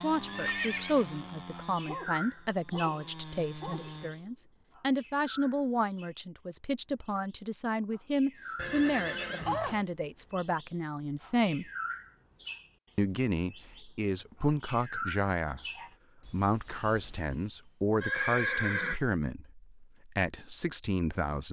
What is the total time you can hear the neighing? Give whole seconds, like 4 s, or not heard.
3 s.